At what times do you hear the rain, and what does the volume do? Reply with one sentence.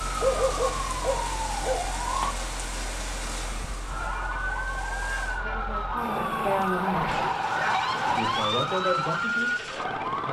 The rain can be heard from 0.0 to 5.4 s, getting quieter.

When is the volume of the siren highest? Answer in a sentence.
The volume of the siren peaks at 8 seconds.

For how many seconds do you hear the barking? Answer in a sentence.
The barking can be heard for 3 seconds in total.